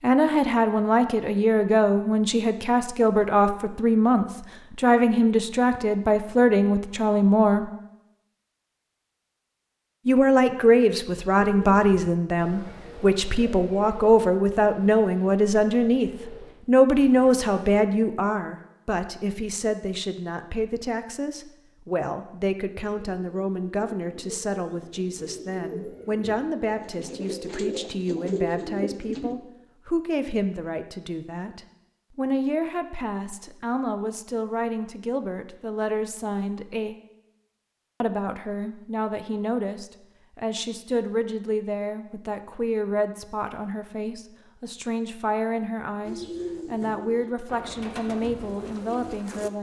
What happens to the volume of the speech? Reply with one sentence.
The volume of the speech goes down.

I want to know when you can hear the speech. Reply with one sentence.
You can hear the speech from 0.0 to 7.7 s, from 10.1 to 37.0 s and from 38.0 to 49.5 s.